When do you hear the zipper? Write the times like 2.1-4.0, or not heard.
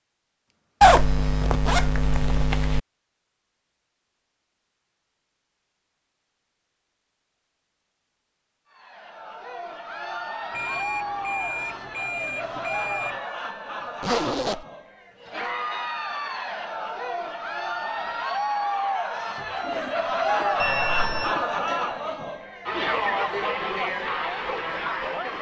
0.8-2.8, 14.0-14.7, 19.6-21.5.